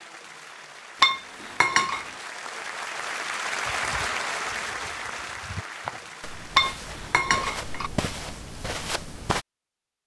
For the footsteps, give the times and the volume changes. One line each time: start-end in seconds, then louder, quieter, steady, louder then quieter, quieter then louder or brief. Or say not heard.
3.6-9.4 louder.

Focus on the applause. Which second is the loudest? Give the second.
4 s.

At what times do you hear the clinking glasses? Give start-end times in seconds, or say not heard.
1.0-2.0, 6.5-7.9.